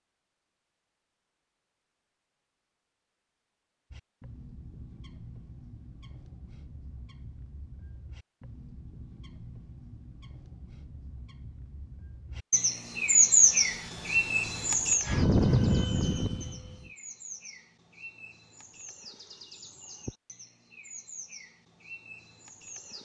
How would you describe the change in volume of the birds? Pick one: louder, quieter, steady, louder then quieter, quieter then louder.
louder then quieter.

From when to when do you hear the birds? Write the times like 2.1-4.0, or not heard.
3.9-23.0.